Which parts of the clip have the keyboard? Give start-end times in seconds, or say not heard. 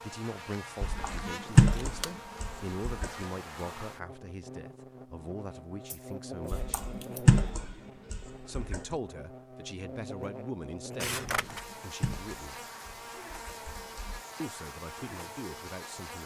0.8-3.2, 6.5-8.9, 11.5-14.2.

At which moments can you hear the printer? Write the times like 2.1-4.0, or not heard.
not heard.